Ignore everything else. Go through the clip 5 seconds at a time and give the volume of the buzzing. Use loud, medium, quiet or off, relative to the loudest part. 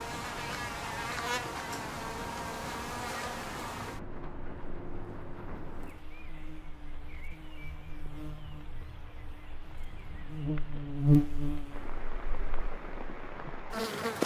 medium, quiet, loud.